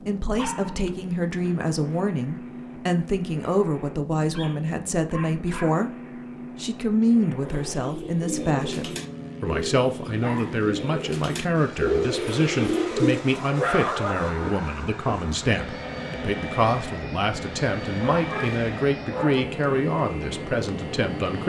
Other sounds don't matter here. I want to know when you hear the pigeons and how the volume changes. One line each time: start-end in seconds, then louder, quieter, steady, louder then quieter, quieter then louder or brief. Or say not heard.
7.4-13.2 louder.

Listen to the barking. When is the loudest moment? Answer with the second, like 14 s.
14 s.